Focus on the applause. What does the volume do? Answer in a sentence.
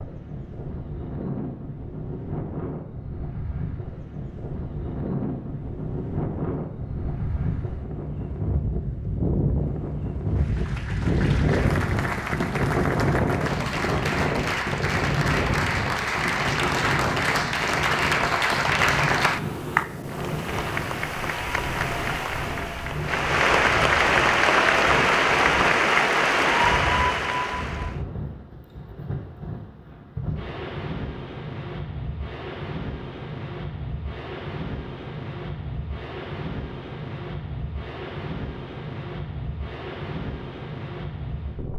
The volume of the applause goes up.